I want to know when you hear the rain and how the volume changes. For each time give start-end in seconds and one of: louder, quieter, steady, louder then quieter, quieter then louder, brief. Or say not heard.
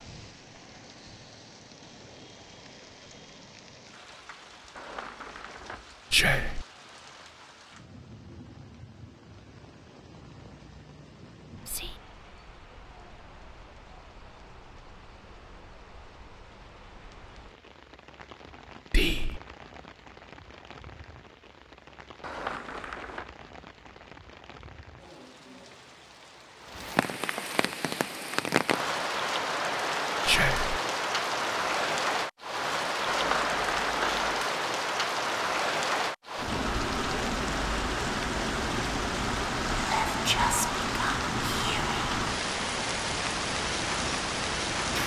0.0-45.0 louder.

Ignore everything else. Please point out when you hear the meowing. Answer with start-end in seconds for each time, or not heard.
4.8-5.9, 22.2-23.2, 33.0-34.5.